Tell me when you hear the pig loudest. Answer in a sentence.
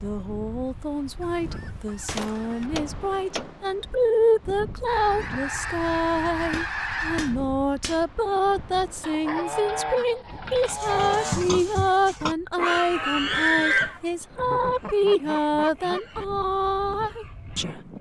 The loudest moment of the pig is at 14 seconds.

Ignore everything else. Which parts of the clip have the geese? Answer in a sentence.
You can hear the geese from 1.2 to 2.7 s, from 4.8 to 7.3 s, from 9.0 to 11.4 s and from 14.4 to 16.0 s.